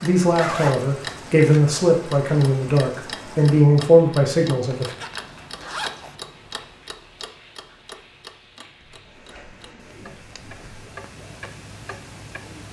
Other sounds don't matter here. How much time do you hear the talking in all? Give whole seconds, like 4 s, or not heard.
5 s.